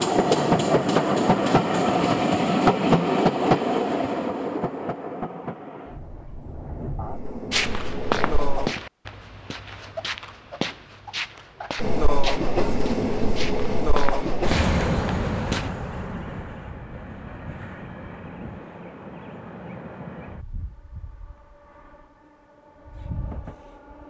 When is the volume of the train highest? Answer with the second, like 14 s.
3 s.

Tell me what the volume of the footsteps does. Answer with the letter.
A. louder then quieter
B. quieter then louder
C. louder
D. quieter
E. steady
B.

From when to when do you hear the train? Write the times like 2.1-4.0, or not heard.
0.0-8.8, 11.8-24.0.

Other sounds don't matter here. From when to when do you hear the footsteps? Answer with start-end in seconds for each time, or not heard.
7.5-15.7.